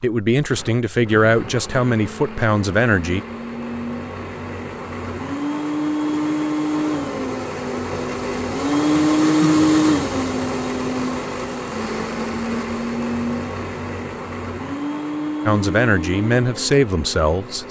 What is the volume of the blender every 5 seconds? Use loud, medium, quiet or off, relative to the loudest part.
quiet, loud, medium, medium.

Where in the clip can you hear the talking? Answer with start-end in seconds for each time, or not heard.
0.0-3.2, 15.4-17.6.